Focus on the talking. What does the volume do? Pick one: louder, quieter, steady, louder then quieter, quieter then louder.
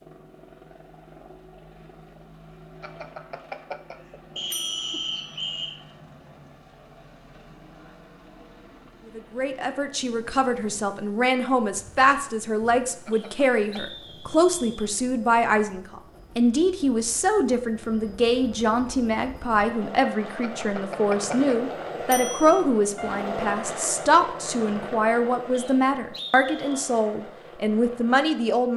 steady.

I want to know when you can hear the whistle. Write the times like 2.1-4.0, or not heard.
4.3-5.8, 13.1-14.9, 25.5-26.9.